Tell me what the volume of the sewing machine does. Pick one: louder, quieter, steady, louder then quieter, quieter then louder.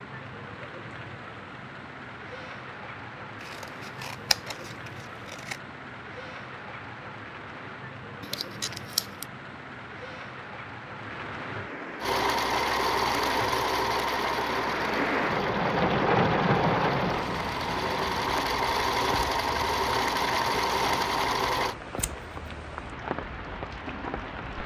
quieter then louder.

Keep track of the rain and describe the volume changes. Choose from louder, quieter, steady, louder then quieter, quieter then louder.
louder then quieter.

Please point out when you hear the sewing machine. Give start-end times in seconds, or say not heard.
12.0-21.8.